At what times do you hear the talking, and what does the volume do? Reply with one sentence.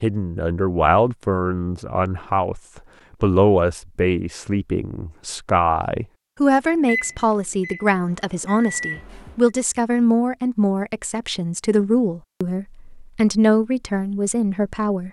You can hear the talking from 0.0 to 15.0 s, at a steady volume.